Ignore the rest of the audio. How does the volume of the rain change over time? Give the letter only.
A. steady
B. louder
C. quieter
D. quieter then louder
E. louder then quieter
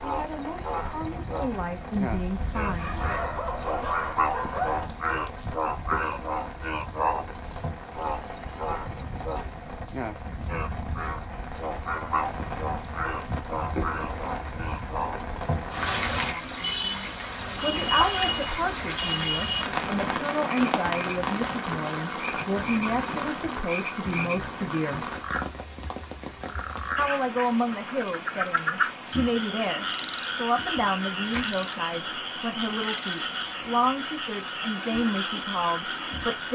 E.